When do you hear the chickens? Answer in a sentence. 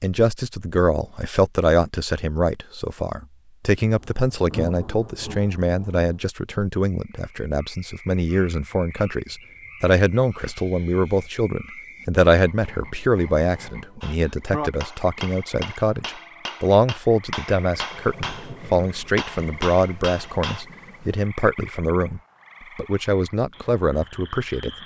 The chickens can't be heard in this clip.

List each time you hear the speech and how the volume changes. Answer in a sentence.
You can hear the speech from 0.0 to 24.8 s, at a steady volume.